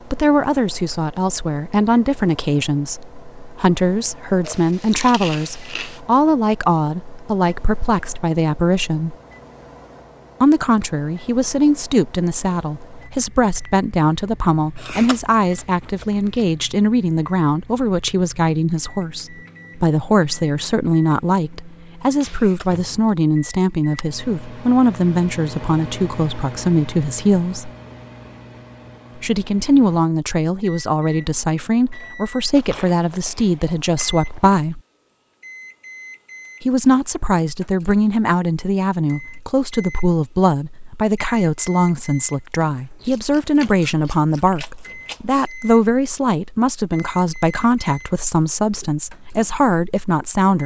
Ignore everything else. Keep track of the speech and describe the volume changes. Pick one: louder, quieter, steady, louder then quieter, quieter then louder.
steady.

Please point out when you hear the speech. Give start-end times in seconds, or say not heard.
0.1-9.2, 10.4-27.7, 29.1-34.8, 36.6-50.6.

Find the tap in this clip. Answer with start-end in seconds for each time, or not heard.
not heard.